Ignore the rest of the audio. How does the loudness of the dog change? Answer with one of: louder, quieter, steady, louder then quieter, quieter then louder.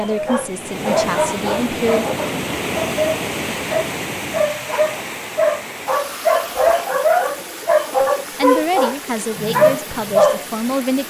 louder.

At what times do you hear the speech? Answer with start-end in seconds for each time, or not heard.
0.0-2.0, 8.3-11.0.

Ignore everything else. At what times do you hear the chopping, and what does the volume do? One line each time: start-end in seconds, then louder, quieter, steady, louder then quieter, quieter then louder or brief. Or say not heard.
not heard.